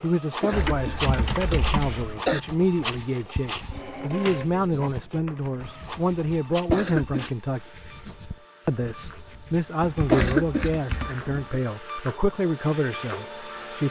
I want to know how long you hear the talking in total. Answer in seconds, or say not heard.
13 s.